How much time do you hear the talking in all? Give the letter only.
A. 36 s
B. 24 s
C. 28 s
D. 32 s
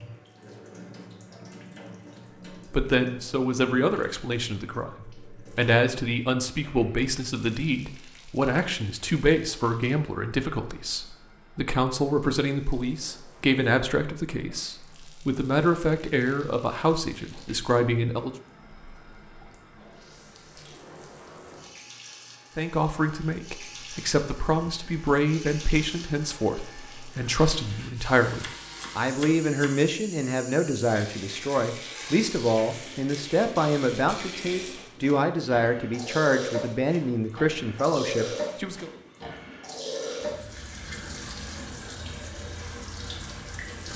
D.